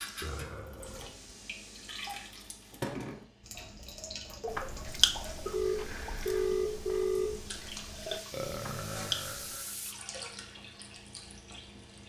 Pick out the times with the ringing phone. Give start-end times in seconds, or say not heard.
5.5-7.4.